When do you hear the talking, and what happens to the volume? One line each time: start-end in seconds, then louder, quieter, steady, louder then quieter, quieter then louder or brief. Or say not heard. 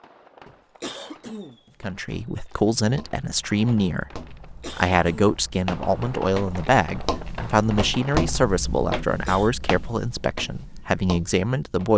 1.8-11.9 steady.